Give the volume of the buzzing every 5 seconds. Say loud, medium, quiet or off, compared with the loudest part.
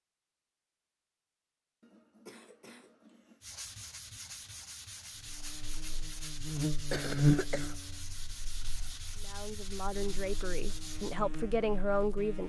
off, loud, quiet.